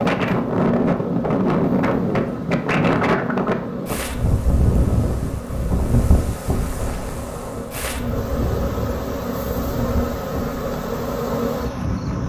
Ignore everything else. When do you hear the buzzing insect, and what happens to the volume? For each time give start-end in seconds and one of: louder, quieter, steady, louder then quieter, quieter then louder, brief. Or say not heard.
0.2-12.2 louder.